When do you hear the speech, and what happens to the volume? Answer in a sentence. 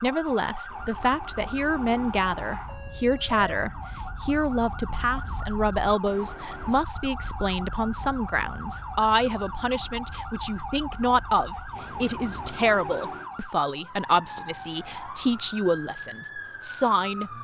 The speech can be heard from 0.0 to 17.3 s, at a steady volume.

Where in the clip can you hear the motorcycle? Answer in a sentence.
You can't hear the motorcycle here.